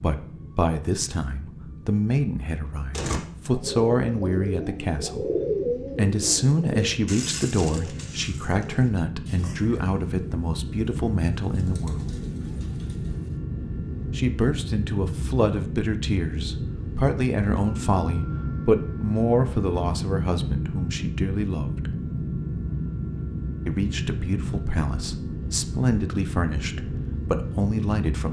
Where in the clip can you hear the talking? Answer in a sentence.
The talking can be heard from 0.0 to 5.2 s, from 6.0 to 12.1 s, from 14.2 to 21.9 s and from 23.6 to 28.2 s.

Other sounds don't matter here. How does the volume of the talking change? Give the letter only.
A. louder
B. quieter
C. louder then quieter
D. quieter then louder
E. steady
E.